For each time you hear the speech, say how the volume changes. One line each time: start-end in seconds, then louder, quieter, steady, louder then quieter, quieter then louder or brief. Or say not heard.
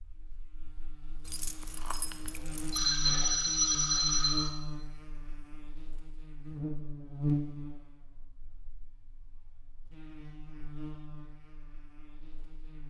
not heard.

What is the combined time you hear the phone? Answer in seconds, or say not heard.
2 s.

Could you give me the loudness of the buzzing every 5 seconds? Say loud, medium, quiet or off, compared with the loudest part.
medium, loud, medium.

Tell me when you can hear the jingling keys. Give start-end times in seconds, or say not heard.
1.2-2.8.